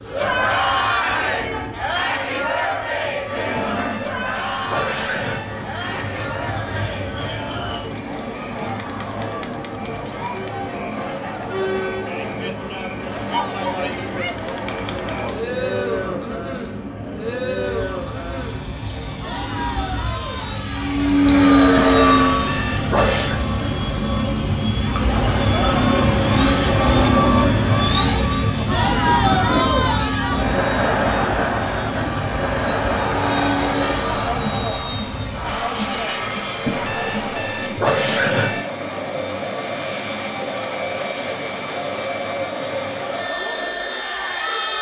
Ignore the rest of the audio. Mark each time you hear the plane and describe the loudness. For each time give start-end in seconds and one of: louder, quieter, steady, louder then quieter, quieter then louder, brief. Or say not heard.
0.0-44.7 louder then quieter.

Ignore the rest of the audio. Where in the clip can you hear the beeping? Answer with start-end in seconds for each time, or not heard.
3.5-5.6, 21.8-23.4, 36.6-38.6.